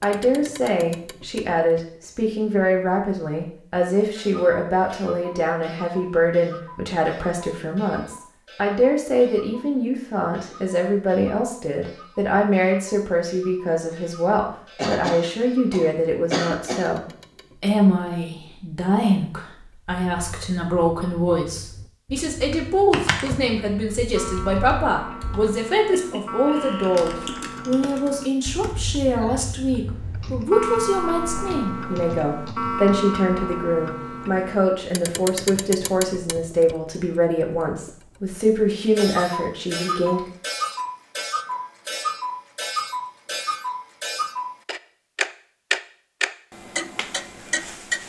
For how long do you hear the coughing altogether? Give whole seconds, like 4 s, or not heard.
2 s.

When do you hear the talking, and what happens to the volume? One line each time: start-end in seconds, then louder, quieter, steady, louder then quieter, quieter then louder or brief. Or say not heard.
0.0-40.2 steady.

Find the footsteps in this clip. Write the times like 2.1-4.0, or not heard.
not heard.